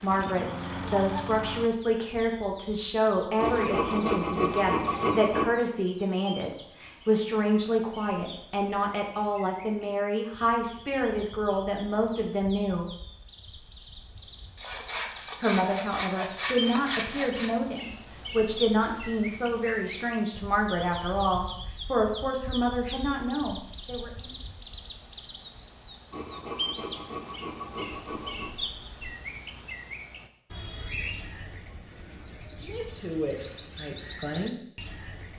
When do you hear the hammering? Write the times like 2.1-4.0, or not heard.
not heard.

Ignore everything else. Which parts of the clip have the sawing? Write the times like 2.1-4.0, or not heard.
3.4-5.5, 14.6-17.6, 26.1-28.5.